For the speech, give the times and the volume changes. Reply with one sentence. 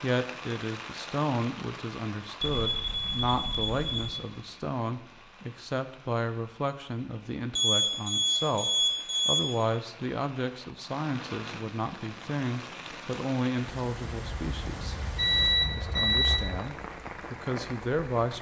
You can hear the speech from 0.0 to 14.9 s, at a steady volume; and briefly from 15.6 to 18.3 s.